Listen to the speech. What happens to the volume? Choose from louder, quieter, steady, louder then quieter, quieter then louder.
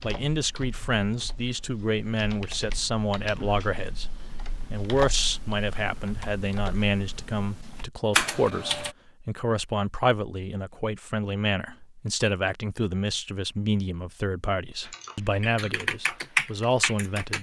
steady.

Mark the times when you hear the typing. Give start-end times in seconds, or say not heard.
0.0-8.9, 14.8-17.3.